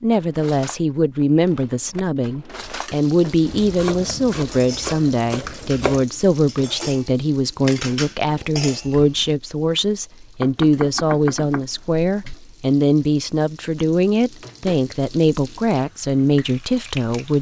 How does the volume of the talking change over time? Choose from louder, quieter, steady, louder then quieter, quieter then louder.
steady.